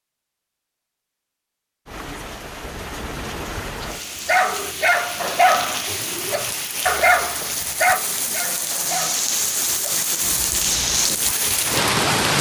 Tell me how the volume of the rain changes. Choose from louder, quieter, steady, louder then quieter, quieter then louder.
louder.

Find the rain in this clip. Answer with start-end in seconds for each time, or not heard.
1.9-12.3.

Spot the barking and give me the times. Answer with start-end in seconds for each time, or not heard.
3.9-11.3.